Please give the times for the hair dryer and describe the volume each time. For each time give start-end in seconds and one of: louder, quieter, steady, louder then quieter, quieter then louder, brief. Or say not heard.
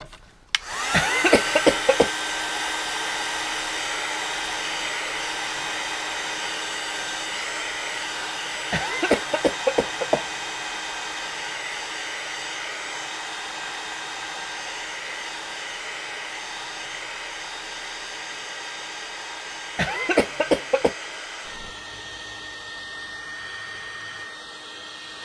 0.0-25.1 quieter.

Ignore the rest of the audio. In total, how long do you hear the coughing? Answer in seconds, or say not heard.
4 s.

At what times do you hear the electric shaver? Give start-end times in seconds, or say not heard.
not heard.